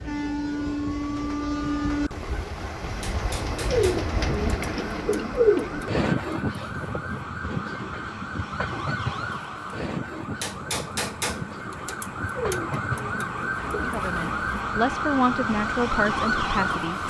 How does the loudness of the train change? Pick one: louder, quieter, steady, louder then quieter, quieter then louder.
quieter.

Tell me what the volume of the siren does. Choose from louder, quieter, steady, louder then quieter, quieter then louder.
louder.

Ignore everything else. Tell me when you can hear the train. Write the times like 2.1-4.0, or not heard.
0.0-17.0.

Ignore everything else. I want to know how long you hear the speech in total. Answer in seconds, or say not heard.
3 s.